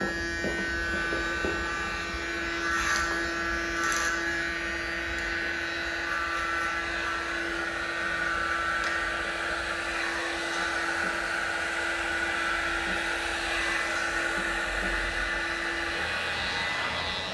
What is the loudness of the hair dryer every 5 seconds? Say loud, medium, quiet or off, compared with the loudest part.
medium, loud, loud, loud.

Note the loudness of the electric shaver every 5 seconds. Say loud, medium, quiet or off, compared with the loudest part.
loud, loud, medium, medium.